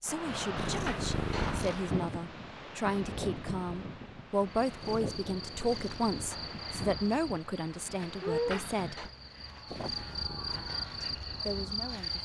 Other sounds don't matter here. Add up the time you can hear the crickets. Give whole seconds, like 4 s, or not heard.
8 s.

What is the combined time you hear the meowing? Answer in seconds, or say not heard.
4 s.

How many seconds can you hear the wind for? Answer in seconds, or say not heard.
12 s.